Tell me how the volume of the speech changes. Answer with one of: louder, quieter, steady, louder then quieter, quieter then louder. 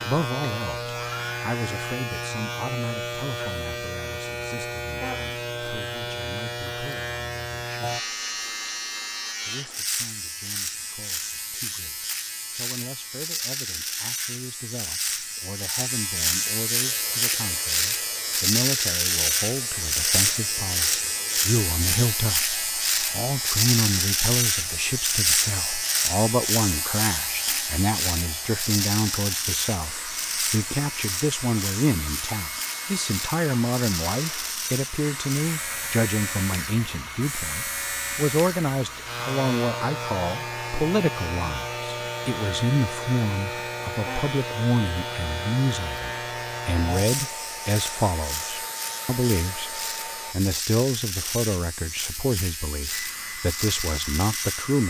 louder.